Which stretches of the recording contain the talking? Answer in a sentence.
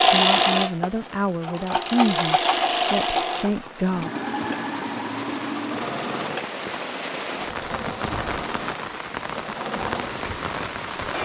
The talking can be heard from 0.1 to 4.1 s.